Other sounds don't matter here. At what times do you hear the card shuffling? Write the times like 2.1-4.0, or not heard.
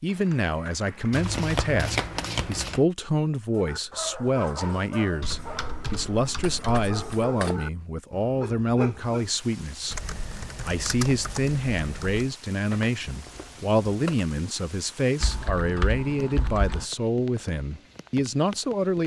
1.1-2.9, 6.4-7.6, 12.7-14.2.